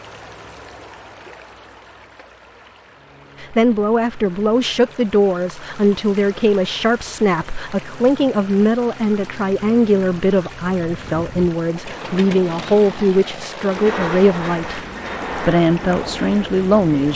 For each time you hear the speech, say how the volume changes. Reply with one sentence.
The speech can be heard from 3.4 to 17.1 s, at a steady volume.